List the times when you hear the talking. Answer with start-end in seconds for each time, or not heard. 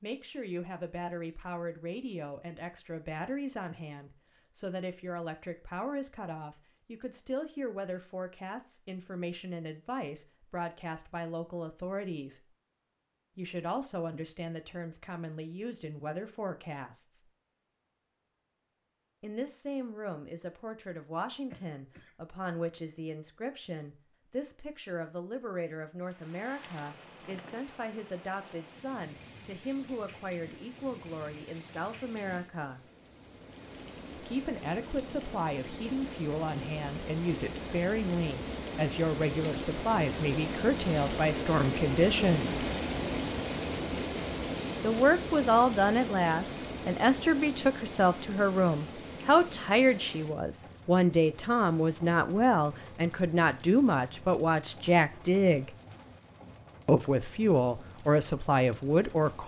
0.0-12.4, 13.3-17.2, 19.2-32.8, 34.1-42.6, 44.8-55.7, 56.9-59.4.